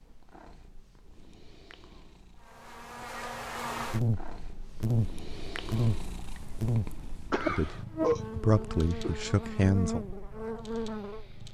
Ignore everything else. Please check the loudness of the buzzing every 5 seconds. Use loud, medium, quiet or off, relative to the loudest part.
loud, loud, medium.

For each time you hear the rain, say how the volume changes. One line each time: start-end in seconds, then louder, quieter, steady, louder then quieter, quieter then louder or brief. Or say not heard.
not heard.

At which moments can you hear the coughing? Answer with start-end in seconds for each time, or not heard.
7.3-9.2.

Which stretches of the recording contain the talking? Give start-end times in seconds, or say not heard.
7.5-10.1.